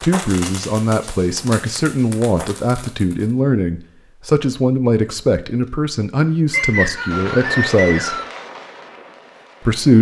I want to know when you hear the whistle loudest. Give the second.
7 s.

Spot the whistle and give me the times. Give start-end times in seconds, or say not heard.
6.5-8.3.